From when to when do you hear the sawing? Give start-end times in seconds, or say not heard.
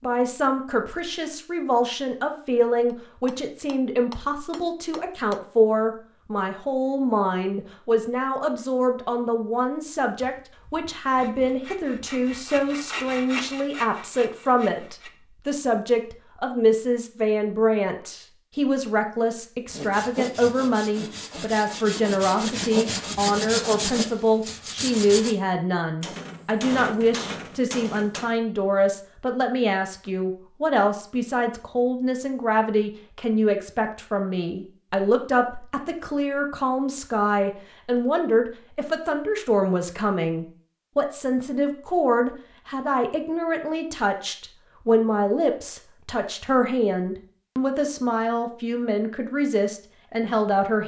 10.1-15.1, 19.6-25.4.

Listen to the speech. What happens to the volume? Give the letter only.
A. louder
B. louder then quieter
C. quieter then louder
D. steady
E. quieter
D.